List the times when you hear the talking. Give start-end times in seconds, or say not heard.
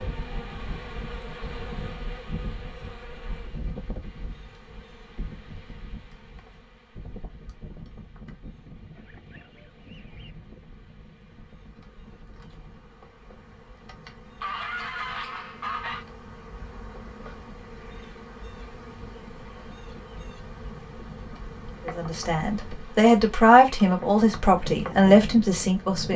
21.9-26.1.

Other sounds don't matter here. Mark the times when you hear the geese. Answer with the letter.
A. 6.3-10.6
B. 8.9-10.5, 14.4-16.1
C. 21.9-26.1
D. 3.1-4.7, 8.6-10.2
B.